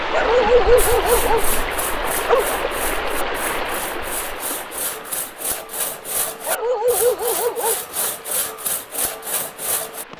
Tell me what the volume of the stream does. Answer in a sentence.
The loudness of the stream goes down.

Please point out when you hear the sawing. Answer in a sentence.
You can hear the sawing from 0.8 to 10.1 s.